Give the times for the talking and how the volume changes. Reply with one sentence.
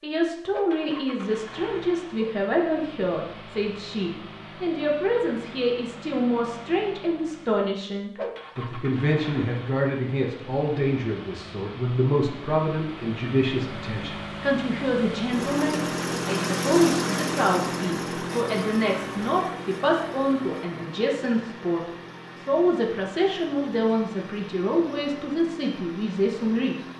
The talking can be heard from 0.0 to 26.8 s, at a steady volume.